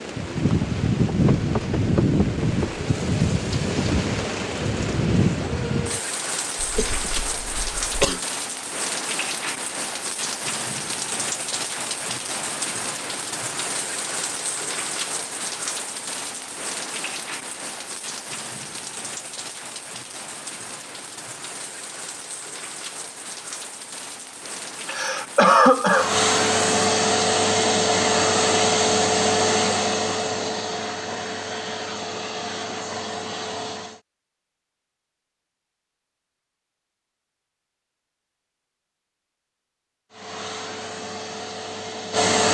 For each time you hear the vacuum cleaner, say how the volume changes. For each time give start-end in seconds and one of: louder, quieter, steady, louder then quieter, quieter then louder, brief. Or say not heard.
25.9-34.0 quieter
40.1-42.4 brief.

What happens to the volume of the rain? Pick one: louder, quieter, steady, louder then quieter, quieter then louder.
quieter.